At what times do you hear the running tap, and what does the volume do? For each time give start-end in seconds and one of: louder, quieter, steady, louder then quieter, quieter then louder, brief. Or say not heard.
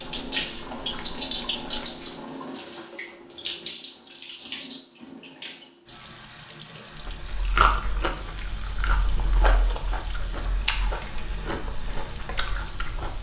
0.0-13.1 quieter.